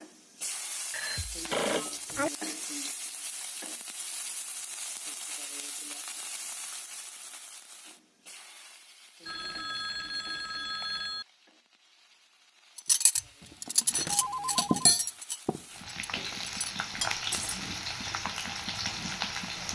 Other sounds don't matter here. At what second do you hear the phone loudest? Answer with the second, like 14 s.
2 s.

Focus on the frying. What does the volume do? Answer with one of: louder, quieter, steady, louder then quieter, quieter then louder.
quieter then louder.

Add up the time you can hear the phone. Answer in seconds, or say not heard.
4 s.